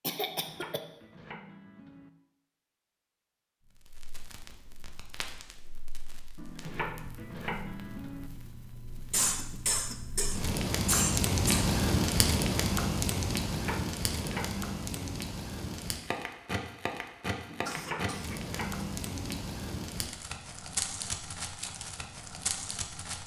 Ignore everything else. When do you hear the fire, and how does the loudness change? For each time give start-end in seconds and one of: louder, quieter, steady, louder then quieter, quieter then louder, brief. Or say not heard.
3.6-23.2 louder then quieter.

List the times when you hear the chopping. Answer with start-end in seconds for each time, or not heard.
0.2-2.1, 6.3-8.3, 13.5-15.2, 17.4-19.4.